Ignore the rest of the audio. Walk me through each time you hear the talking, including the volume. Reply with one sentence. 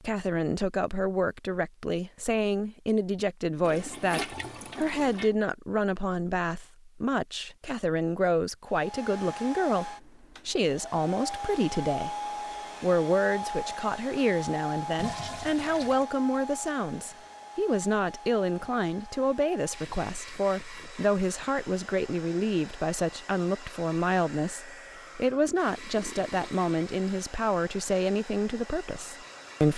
You can hear the talking from 0.0 to 12.2 s, at a steady volume; and from 12.8 to 29.7 s, at a steady volume.